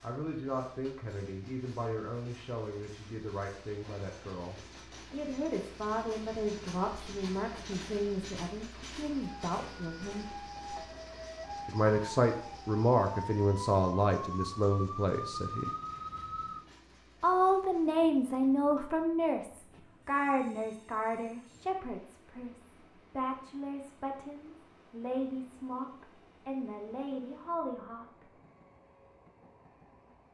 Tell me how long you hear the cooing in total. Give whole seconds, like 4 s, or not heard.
not heard.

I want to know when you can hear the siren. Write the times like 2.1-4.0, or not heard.
9.2-16.6.